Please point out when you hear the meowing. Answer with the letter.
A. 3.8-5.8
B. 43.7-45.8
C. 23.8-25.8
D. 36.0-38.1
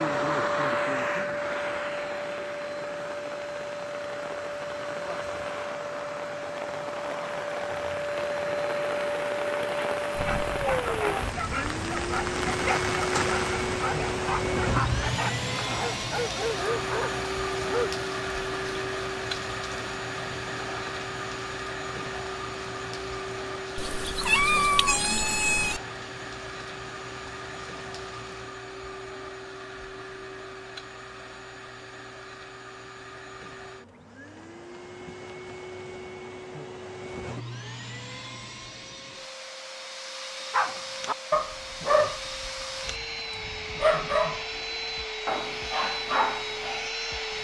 C.